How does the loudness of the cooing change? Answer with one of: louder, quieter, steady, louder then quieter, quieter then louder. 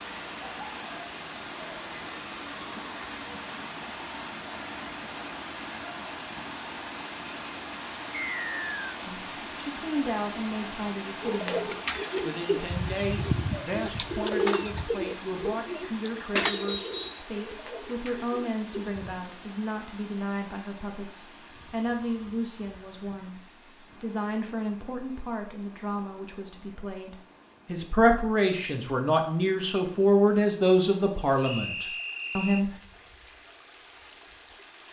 quieter.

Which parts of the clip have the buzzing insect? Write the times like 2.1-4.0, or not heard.
not heard.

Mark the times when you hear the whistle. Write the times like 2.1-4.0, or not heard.
8.1-8.8, 16.4-17.2, 31.4-32.6.